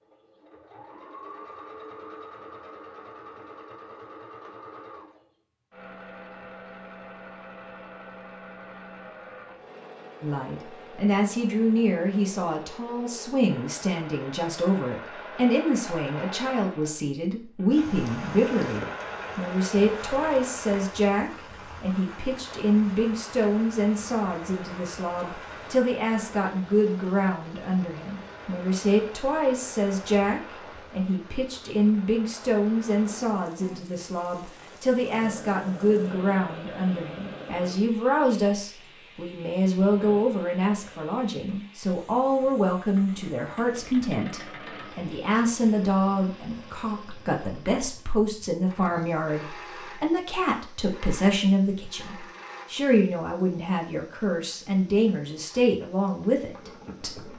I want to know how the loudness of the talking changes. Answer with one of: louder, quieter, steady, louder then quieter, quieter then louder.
steady.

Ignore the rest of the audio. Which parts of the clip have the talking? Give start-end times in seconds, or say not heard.
10.2-57.3.